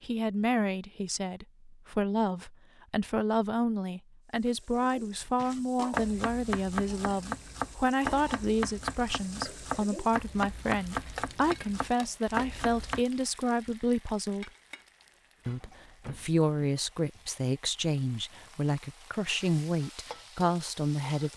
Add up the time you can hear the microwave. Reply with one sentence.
You can't hear the microwave here.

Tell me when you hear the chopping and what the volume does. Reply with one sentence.
The chopping can be heard from 5.3 to 13.1 s, at a steady volume.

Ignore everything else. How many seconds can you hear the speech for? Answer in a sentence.
The speech can be heard for 20 seconds in total.